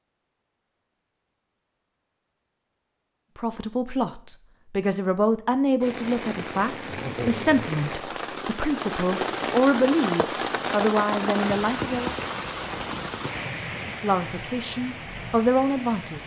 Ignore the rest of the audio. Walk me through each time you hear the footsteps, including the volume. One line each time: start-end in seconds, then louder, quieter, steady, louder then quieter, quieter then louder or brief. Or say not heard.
not heard.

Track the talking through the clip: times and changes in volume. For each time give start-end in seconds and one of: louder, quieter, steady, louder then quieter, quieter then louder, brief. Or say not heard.
3.4-12.2 steady
13.8-16.2 brief.